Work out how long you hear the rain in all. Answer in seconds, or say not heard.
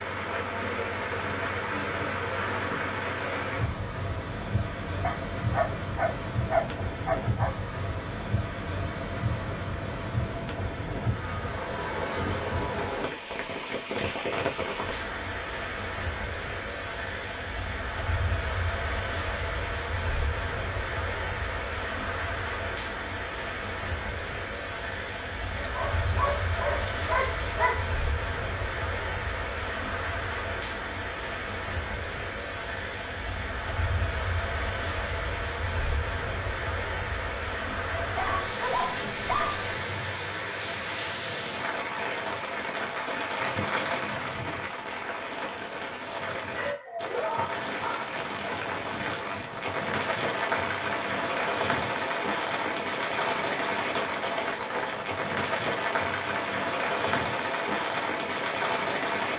59 s.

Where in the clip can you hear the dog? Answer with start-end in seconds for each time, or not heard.
5.0-7.5, 25.6-27.9, 37.9-39.8, 46.5-48.1.